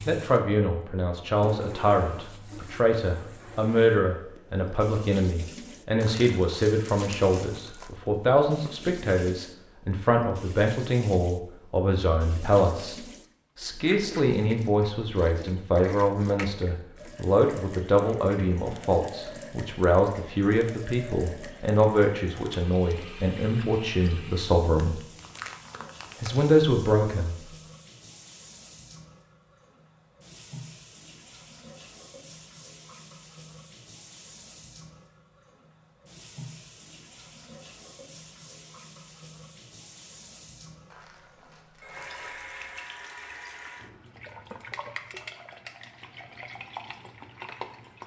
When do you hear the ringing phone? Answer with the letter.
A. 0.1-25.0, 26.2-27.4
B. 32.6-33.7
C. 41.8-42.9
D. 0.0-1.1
C.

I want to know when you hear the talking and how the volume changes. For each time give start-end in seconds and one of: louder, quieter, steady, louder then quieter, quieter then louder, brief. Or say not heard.
0.1-25.0 steady
26.2-27.4 brief.